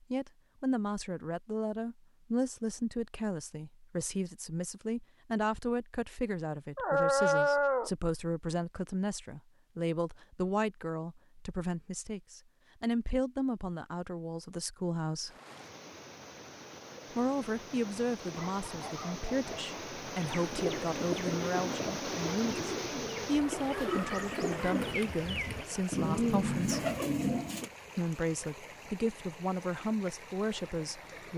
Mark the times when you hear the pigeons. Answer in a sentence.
You can hear the pigeons from 20.3 to 27.7 s.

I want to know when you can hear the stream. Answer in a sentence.
The stream can be heard from 15.2 to 31.3 s.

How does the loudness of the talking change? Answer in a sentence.
The loudness of the talking stays about the same.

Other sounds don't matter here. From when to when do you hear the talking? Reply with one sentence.
The talking can be heard from 0.1 to 15.3 s, from 17.1 to 26.9 s and from 27.9 to 31.3 s.